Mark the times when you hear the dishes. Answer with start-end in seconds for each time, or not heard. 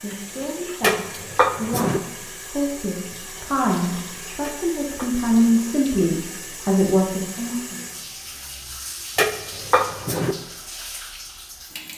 0.8-2.0, 4.4-5.6, 9.2-10.3.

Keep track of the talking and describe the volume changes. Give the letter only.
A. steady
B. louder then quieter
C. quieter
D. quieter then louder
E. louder
E.